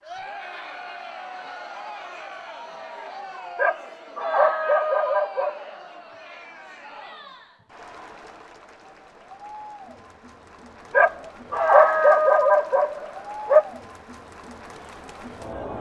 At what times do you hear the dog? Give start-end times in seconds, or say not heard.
3.5-5.8, 10.9-13.7.